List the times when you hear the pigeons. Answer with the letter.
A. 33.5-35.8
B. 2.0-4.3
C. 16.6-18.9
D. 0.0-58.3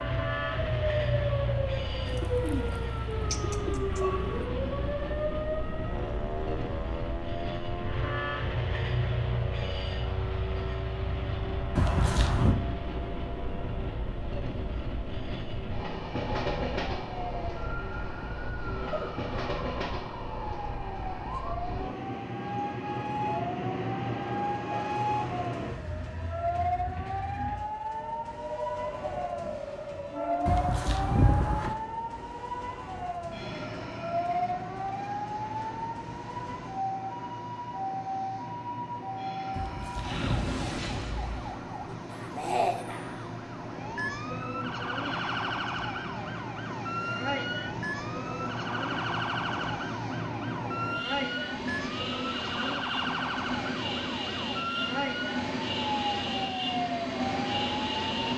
B.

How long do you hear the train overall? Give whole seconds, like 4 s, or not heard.
58 s.